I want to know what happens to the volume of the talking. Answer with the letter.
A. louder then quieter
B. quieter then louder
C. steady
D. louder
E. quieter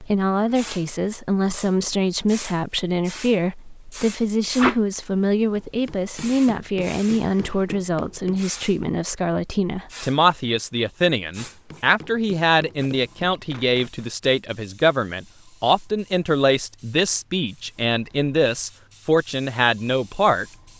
C.